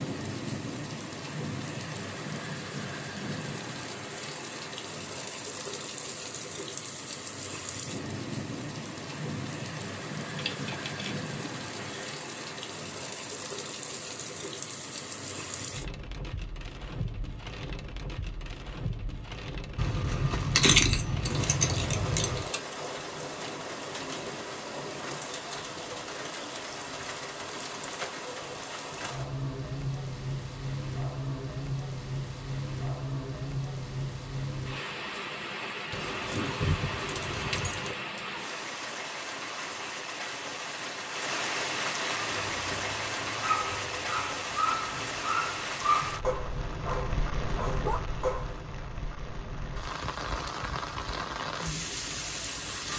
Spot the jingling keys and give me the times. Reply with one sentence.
The jingling keys can be heard from 10.3 to 12.2 s, from 19.8 to 22.5 s and from 35.9 to 38.0 s.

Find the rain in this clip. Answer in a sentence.
You can hear the rain from 0.0 to 52.9 s.